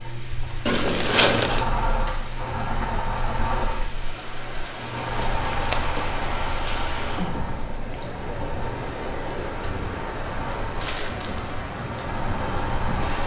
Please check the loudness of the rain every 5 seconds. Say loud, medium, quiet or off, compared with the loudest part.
medium, loud, loud.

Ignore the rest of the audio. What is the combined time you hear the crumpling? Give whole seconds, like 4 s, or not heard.
3 s.